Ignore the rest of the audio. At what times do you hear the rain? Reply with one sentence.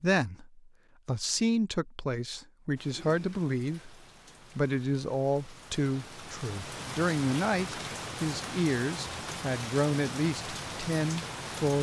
You can hear the rain from 2.8 to 11.7 s.